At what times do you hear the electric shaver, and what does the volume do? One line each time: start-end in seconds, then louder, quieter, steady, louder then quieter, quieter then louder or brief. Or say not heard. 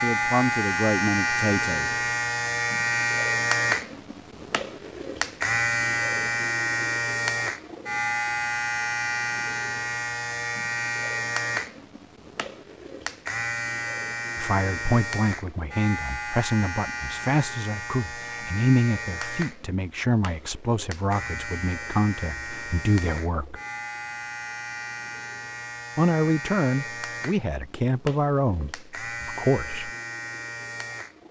0.0-31.2 quieter.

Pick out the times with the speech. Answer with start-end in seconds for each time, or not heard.
0.0-1.9, 14.3-23.6, 25.9-29.9.